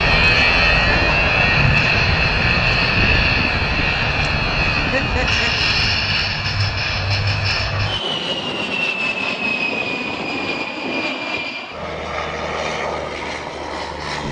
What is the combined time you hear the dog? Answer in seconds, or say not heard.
not heard.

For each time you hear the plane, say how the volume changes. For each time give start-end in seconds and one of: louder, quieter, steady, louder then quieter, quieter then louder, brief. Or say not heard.
0.0-14.2 quieter.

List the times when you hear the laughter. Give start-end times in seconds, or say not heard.
4.5-5.5.